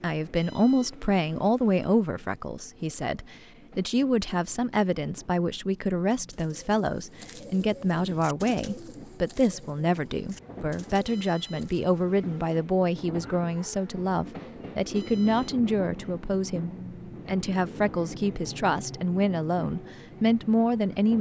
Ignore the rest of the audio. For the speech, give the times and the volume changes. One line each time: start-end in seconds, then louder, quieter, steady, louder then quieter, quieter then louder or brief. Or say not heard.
0.0-21.1 steady.